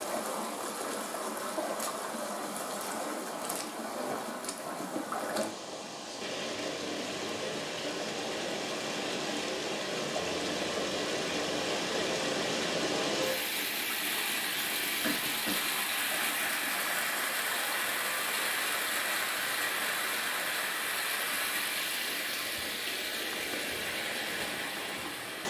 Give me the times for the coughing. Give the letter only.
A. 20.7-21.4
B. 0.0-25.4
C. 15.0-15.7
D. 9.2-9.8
C.